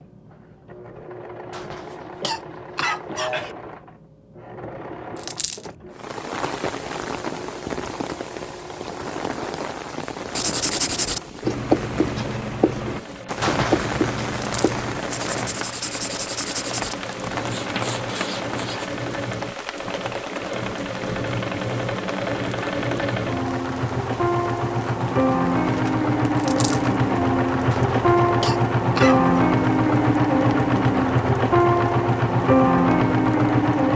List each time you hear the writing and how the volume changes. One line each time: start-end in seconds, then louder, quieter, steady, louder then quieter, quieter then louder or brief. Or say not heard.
10.3-18.9 quieter.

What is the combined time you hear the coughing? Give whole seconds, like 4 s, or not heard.
4 s.